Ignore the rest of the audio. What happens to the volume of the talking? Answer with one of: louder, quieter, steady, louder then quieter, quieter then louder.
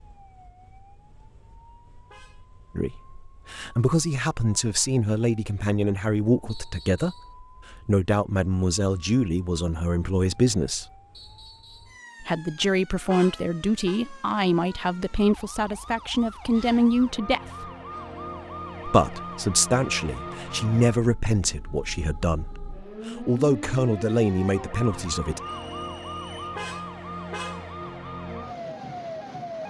steady.